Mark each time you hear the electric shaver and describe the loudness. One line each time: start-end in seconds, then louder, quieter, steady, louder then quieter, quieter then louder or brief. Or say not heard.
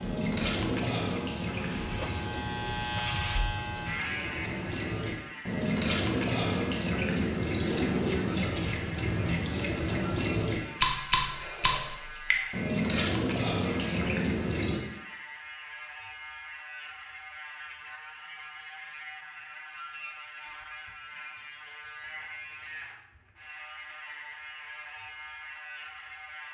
0.0-26.4 quieter.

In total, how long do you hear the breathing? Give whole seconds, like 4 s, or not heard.
not heard.